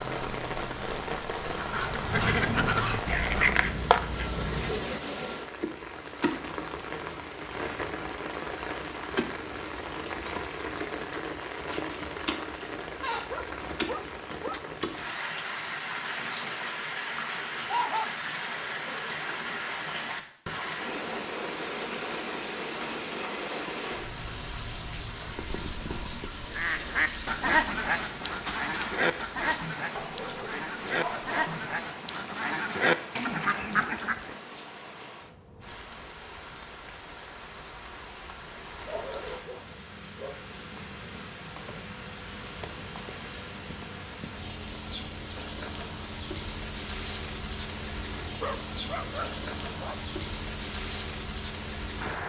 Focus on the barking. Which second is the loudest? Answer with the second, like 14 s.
18 s.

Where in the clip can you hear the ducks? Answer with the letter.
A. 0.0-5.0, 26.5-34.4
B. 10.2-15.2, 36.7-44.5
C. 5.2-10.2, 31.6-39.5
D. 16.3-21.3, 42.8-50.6
A.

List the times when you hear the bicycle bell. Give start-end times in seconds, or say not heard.
not heard.